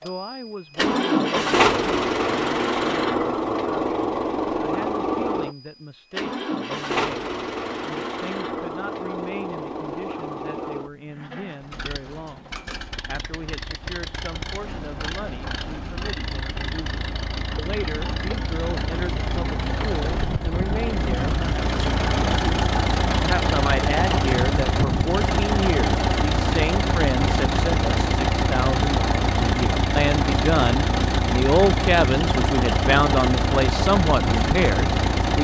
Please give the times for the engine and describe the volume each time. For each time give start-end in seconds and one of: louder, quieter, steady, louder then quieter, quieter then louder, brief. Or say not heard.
0.0-35.3 quieter then louder.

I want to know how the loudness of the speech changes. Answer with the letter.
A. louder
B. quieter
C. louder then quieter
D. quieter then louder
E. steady
A.